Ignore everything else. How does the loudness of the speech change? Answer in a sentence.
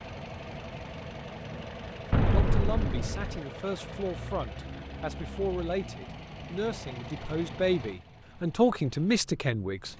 The volume of the speech goes up.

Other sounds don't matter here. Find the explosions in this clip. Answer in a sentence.
The explosions can be heard from 2.1 to 3.4 s.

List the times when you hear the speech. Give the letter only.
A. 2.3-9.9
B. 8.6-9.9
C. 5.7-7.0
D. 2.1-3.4
A.